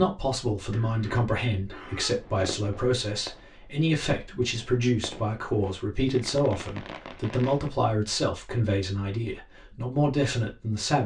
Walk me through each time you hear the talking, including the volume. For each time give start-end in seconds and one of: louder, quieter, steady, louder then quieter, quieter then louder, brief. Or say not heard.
0.0-11.0 steady.